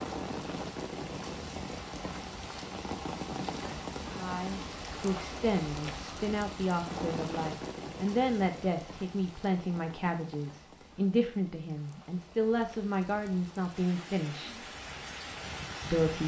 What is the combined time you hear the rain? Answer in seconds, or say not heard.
16 s.